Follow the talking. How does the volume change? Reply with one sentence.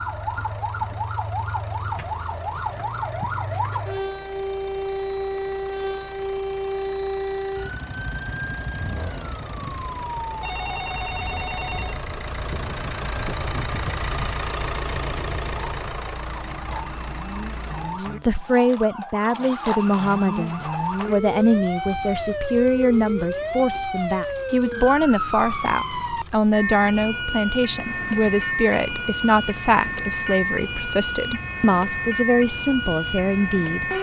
The volume of the talking stays about the same.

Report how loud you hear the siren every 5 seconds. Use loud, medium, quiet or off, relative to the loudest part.
loud, loud, medium, medium, loud, loud, loud.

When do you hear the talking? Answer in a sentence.
You can hear the talking from 17.9 to 33.9 s.